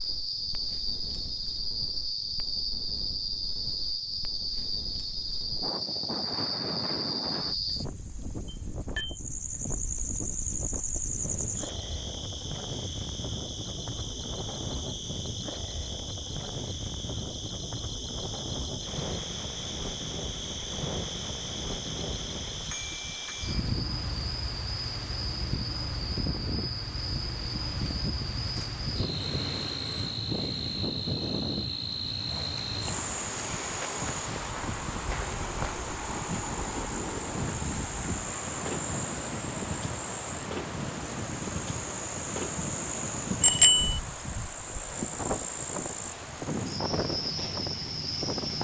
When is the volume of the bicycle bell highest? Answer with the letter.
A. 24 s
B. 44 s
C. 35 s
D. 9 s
B.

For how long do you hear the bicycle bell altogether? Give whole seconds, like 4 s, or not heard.
2 s.